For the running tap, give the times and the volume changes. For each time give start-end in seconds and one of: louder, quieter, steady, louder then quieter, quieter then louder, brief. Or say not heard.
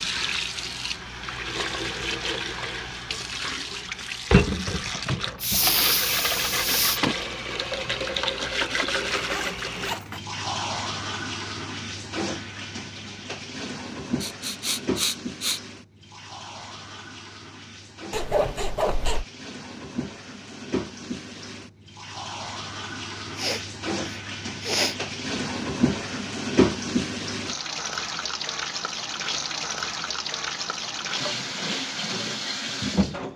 0.0-33.3 quieter then louder.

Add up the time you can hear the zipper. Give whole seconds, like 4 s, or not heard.
2 s.